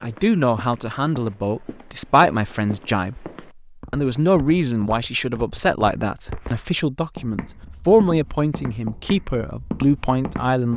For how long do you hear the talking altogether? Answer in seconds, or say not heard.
10 s.